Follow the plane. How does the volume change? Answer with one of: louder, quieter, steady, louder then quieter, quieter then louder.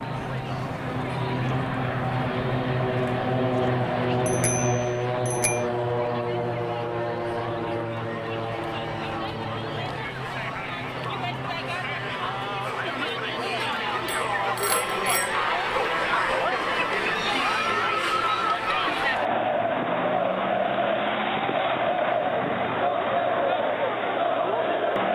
quieter.